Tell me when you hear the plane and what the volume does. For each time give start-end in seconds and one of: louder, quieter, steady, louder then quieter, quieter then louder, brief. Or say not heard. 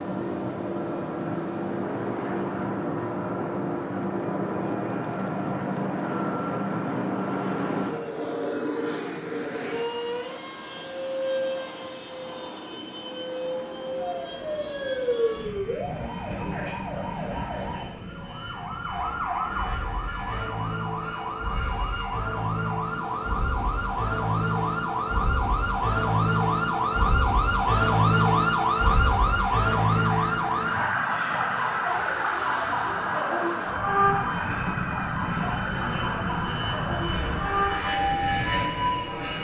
0.0-39.3 quieter then louder.